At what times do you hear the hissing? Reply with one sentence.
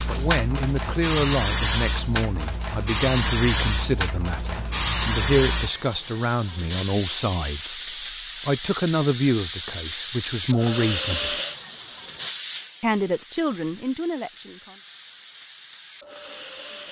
The hissing can be heard from 0.0 to 16.8 s.